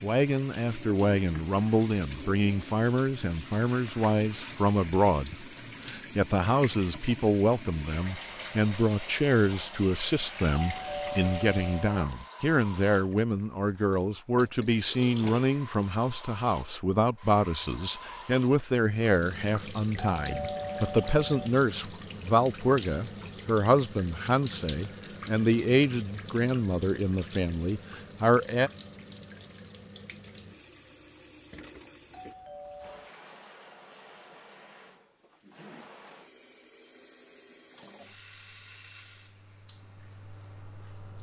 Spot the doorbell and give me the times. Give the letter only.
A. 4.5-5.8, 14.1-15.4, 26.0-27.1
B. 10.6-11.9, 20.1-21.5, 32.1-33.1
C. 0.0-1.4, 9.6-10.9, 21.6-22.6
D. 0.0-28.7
B.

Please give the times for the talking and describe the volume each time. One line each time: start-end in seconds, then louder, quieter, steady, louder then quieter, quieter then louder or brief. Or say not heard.
0.0-28.7 steady.